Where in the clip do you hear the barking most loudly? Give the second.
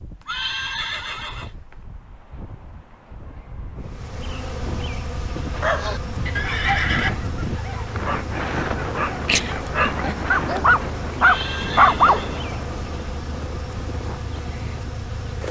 12 s.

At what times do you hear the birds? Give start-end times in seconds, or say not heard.
not heard.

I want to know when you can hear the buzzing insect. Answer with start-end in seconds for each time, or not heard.
3.8-15.4.